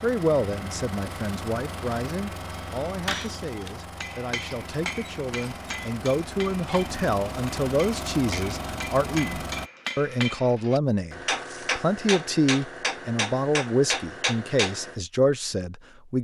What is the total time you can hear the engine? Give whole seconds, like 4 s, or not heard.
10 s.